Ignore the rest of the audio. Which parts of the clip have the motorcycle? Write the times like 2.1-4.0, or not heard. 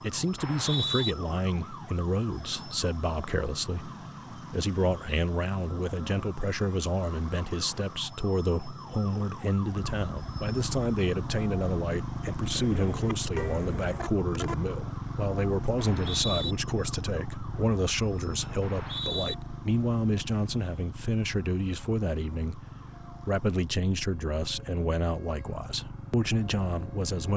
9.7-27.3.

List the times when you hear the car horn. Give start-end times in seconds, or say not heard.
12.6-14.6.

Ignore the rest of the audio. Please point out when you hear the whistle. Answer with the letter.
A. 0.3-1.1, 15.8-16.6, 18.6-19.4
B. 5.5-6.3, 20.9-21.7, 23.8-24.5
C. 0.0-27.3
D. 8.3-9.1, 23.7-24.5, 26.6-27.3
A.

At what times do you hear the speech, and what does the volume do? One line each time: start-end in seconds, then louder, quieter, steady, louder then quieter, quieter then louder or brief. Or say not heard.
0.0-27.3 steady.